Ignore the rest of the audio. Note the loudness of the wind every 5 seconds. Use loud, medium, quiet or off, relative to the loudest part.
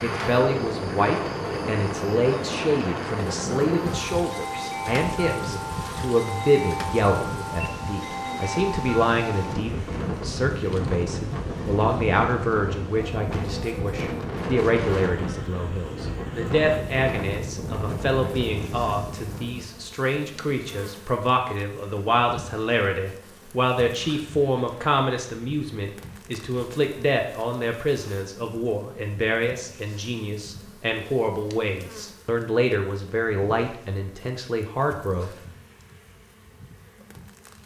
loud, loud, loud, loud, off, off, off, off.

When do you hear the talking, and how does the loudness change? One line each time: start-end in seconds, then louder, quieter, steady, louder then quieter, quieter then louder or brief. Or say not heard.
0.0-35.3 steady.